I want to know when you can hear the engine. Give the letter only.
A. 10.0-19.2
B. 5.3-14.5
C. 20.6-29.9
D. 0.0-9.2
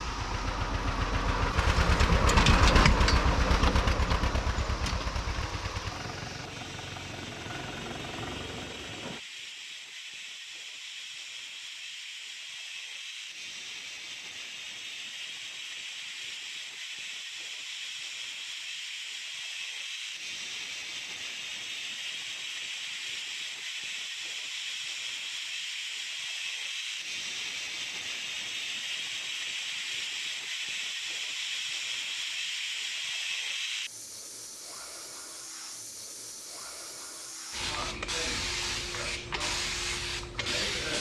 D.